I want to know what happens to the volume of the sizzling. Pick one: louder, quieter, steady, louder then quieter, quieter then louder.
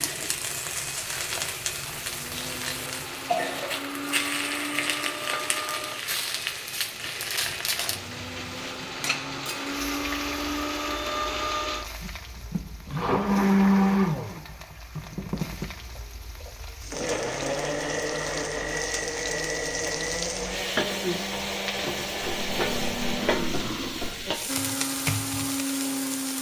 quieter then louder.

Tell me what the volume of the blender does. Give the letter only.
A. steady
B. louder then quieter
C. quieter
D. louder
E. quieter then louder
B.